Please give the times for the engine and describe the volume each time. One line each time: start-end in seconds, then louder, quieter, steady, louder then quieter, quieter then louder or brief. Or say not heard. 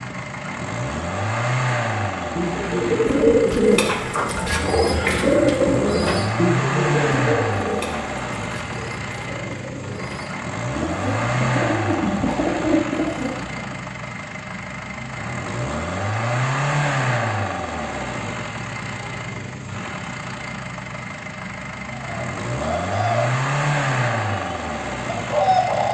0.0-25.8 steady.